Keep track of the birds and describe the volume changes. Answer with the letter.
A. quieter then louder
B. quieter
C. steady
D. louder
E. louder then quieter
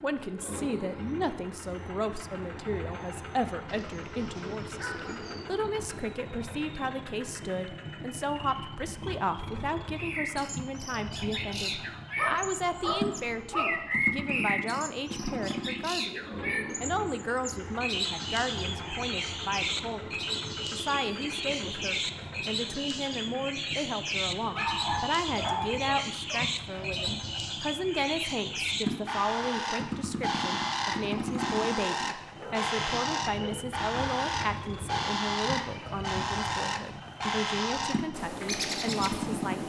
C.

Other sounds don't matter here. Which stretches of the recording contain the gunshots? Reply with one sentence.
You can't hear the gunshots here.